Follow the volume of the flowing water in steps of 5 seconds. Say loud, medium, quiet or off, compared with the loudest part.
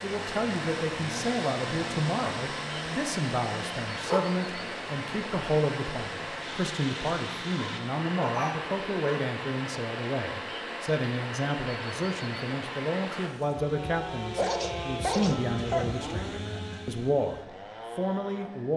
loud, loud, loud, off.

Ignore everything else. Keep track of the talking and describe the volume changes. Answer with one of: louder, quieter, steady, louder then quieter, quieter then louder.
steady.